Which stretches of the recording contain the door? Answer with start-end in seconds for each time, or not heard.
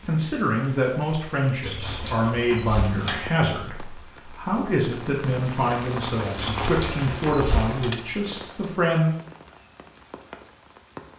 1.6-3.3, 6.3-7.9.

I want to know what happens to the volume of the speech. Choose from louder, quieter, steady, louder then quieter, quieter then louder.
steady.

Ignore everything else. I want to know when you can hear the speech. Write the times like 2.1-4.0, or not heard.
0.0-9.2.